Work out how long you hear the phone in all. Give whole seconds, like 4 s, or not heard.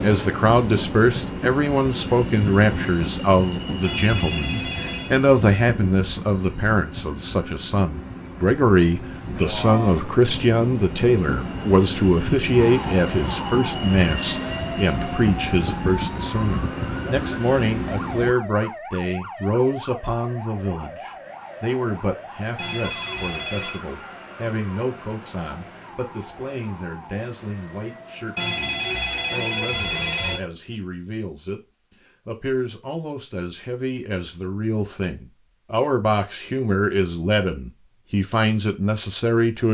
5 s.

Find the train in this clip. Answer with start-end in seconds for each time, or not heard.
0.0-18.4.